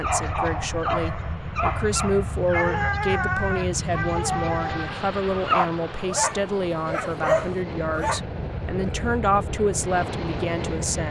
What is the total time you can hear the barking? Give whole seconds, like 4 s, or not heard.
8 s.